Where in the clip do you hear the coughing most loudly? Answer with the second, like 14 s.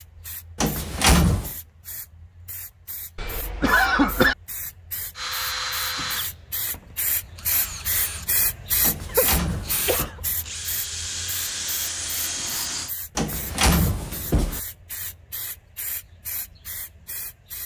4 s.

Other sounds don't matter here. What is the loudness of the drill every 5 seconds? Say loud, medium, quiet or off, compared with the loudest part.
off, loud, loud, off.